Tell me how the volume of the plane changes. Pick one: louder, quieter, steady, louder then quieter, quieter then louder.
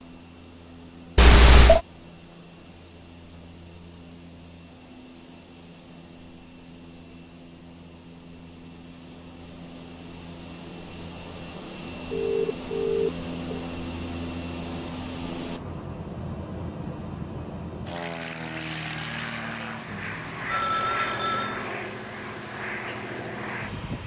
louder.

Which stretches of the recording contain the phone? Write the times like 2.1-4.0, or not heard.
1.1-1.8, 12.1-13.7, 19.9-21.7.